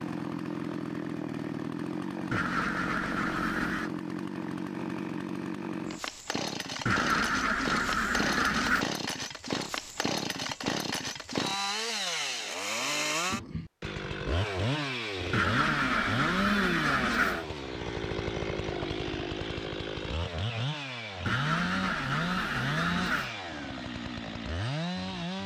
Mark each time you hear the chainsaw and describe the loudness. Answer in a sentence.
You can hear the chainsaw from 0.0 to 25.4 s, at a steady volume.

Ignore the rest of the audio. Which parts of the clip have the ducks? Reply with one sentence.
The ducks can be heard from 2.3 to 3.9 s, from 6.8 to 8.8 s, from 15.3 to 17.4 s and from 21.2 to 23.4 s.